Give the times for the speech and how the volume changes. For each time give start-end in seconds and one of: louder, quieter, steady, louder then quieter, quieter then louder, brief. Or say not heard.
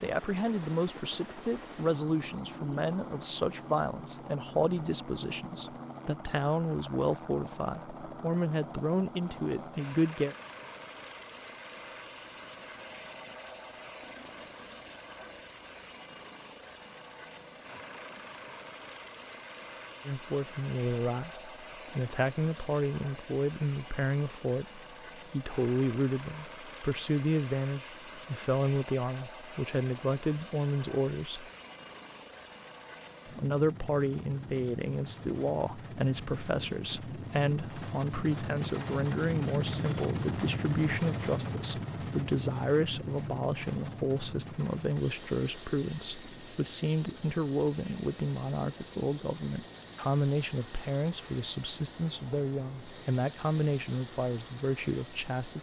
0.0-10.3 steady
20.1-31.4 steady
33.2-55.5 steady.